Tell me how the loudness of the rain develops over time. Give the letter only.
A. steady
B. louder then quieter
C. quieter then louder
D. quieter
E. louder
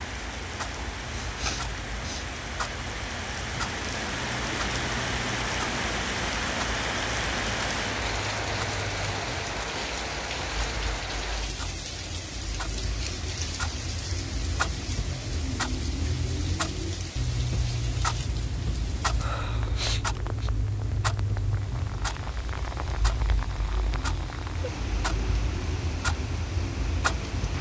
D.